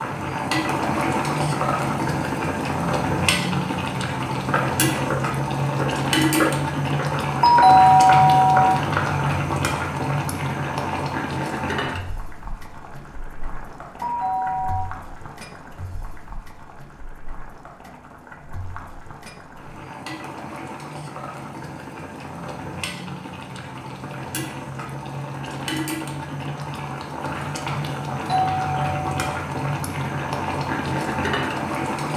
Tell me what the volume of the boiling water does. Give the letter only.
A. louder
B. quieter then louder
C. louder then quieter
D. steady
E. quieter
B.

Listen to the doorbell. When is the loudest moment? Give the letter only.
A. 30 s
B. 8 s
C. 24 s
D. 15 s
B.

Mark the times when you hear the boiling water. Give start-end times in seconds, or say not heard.
0.0-32.1.